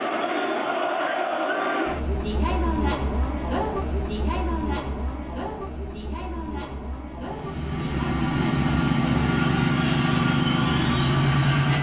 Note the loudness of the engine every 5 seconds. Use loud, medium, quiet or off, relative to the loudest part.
off, loud, loud.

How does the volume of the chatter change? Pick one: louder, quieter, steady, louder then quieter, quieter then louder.
quieter.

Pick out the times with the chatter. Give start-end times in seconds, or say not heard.
0.0-11.7.